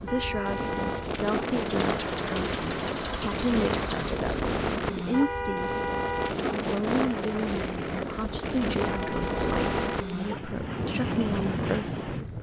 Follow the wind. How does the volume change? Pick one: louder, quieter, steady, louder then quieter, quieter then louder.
steady.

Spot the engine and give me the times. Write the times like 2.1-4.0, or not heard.
1.6-4.2.